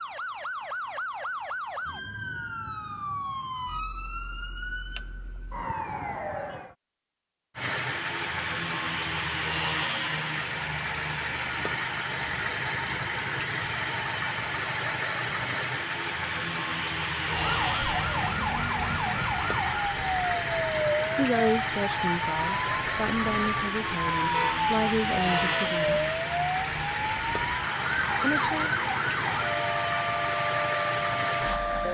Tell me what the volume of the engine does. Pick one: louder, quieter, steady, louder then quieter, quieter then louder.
steady.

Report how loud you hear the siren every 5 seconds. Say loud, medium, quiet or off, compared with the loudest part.
medium, medium, off, loud, loud, loud, loud.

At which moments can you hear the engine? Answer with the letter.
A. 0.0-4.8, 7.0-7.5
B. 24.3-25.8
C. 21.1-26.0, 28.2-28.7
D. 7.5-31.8
D.